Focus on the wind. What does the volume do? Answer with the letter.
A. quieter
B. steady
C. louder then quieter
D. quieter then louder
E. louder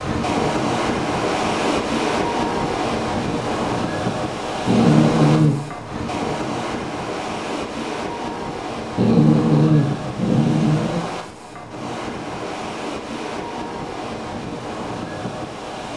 A.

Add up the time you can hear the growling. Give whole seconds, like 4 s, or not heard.
3 s.